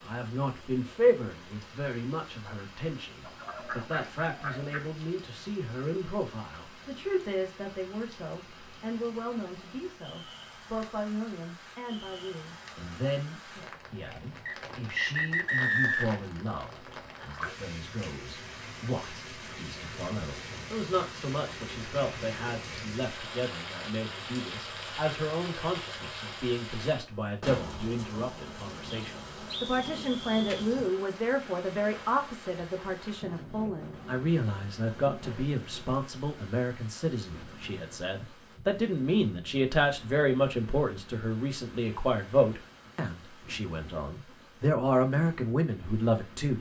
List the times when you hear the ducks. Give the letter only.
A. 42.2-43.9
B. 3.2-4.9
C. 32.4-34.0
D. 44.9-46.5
B.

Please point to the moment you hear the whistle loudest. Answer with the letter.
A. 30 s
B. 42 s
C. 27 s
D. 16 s
D.